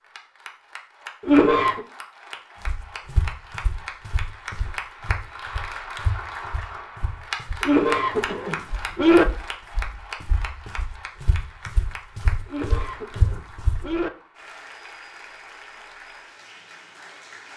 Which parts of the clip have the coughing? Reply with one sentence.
The coughing can be heard from 1.2 to 1.8 s, from 7.6 to 9.2 s and from 12.4 to 14.1 s.